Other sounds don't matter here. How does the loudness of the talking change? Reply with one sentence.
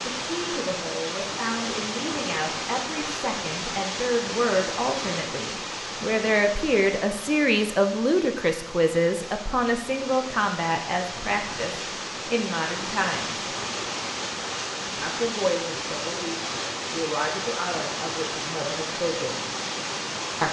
The loudness of the talking goes up, then down.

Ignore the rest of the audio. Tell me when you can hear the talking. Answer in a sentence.
The talking can be heard from 0.0 to 13.5 s and from 15.0 to 19.4 s.